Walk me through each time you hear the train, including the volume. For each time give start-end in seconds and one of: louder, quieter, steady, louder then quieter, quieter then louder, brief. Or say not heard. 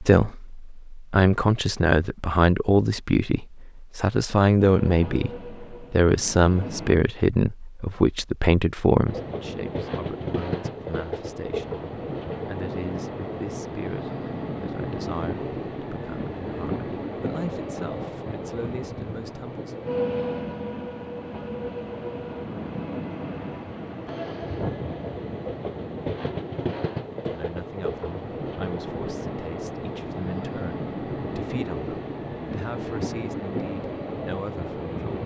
4.6-7.0 brief
9.1-35.2 steady.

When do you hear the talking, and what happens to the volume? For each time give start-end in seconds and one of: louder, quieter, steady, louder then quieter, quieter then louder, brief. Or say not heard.
0.0-19.8 quieter
27.2-35.2 steady.